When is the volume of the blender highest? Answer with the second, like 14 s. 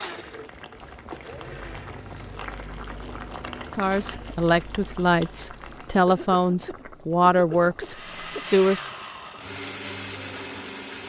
10 s.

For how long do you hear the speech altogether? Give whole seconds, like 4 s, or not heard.
5 s.